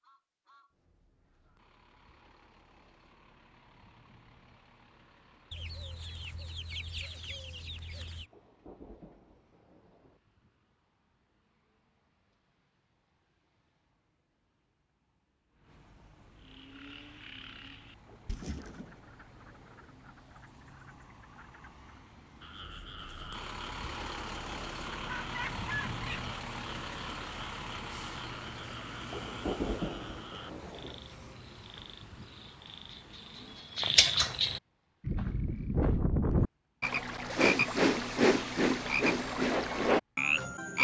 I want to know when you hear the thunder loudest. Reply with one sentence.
The volume of the thunder peaks at 30 seconds.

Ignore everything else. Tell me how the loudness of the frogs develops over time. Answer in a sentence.
The volume of the frogs goes up.